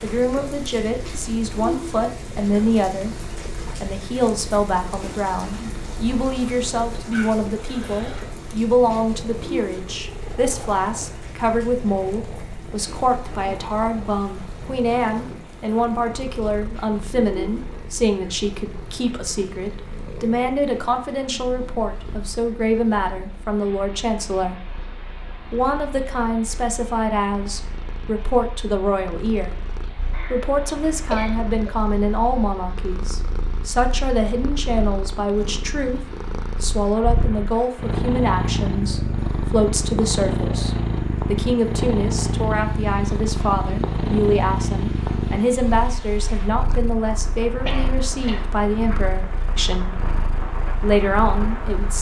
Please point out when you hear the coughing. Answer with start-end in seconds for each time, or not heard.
7.1-8.3, 30.1-31.8, 47.6-48.5.